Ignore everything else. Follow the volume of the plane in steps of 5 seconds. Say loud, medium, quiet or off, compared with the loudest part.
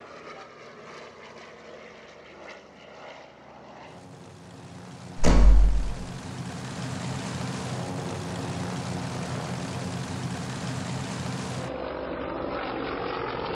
quiet, loud, loud.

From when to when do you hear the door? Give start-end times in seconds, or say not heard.
5.2-5.9.